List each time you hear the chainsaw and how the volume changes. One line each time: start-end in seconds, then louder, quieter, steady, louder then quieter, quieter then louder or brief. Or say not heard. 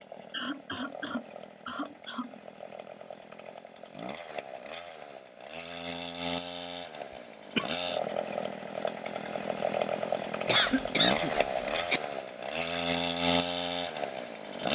0.0-14.6 louder.